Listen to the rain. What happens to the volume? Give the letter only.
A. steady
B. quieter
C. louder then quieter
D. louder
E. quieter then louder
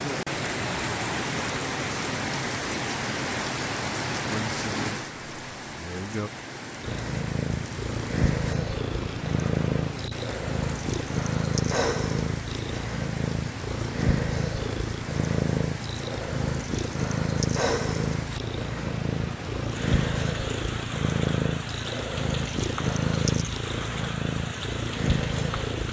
B.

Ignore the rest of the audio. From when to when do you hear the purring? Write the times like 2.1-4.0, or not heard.
6.8-25.8.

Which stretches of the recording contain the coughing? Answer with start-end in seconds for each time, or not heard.
not heard.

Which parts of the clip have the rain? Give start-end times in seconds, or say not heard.
0.0-25.8.